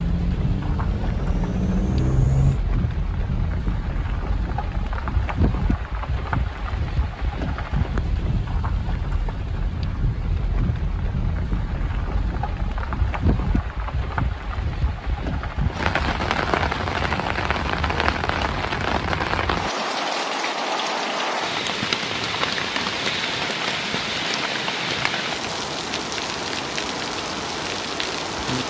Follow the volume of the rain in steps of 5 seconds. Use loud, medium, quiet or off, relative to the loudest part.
medium, medium, medium, loud, loud, loud.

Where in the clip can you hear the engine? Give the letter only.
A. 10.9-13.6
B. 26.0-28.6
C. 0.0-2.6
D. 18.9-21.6
C.